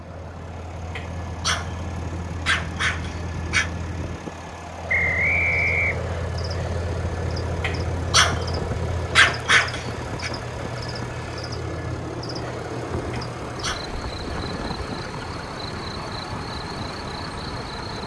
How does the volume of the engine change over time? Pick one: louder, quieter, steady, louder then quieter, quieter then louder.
steady.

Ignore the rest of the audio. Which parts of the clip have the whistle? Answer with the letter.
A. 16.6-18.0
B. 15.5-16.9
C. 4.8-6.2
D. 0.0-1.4
C.